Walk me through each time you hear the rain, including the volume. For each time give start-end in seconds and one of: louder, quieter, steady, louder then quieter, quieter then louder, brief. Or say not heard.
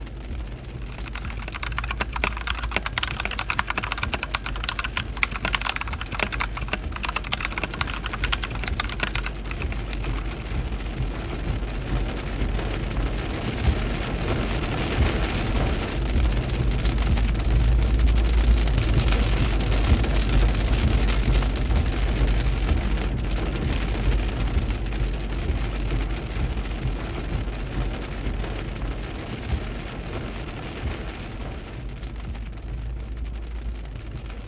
0.0-34.4 louder then quieter.